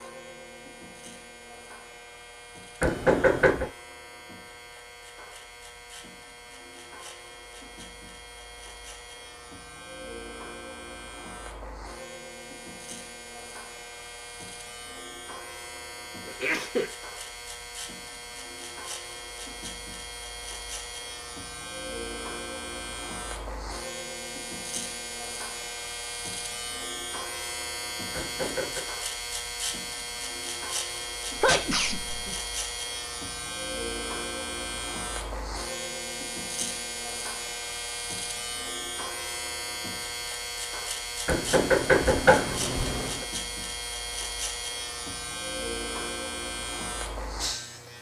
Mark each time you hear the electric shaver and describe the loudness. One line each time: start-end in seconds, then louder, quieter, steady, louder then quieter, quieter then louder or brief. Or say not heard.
0.0-47.9 louder.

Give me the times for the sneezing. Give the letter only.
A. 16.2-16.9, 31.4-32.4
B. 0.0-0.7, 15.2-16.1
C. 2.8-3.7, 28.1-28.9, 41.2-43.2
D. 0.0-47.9
A.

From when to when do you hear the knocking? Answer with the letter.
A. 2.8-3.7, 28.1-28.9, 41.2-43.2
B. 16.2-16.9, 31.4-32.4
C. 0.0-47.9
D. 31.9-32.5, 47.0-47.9
A.